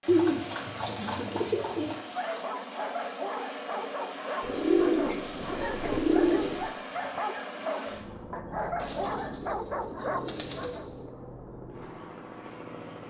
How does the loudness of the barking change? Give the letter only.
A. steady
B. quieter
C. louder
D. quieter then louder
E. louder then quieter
A.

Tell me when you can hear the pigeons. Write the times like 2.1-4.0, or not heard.
0.1-2.0, 4.4-6.7, 8.8-11.0.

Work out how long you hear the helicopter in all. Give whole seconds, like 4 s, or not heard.
13 s.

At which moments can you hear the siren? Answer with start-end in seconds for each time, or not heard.
not heard.